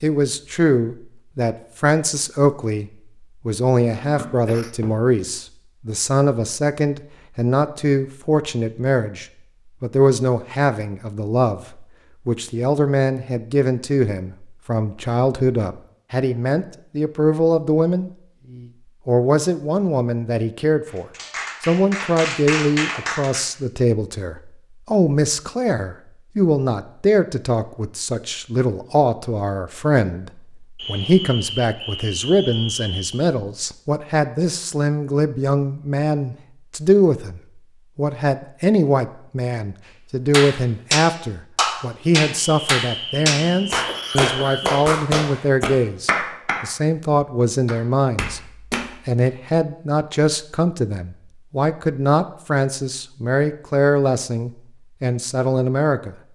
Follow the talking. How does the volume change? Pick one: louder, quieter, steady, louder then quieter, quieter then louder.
steady.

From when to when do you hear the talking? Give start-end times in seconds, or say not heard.
0.0-48.4, 49.0-56.1.